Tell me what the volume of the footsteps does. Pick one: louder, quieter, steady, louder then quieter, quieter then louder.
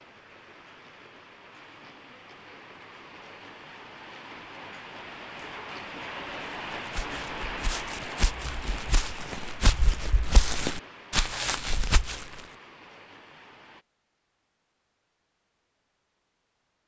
louder.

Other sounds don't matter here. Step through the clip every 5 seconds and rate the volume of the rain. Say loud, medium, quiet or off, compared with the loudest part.
medium, loud, medium, off.